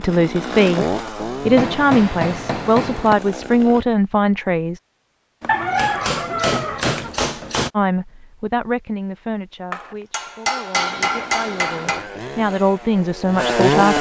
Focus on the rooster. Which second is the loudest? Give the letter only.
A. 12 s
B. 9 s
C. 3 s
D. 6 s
D.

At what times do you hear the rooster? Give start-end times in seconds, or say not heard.
5.5-7.1.